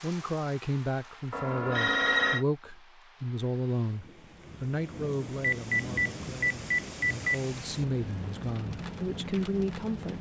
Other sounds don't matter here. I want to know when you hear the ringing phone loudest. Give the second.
2 s.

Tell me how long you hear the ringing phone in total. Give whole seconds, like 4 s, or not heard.
3 s.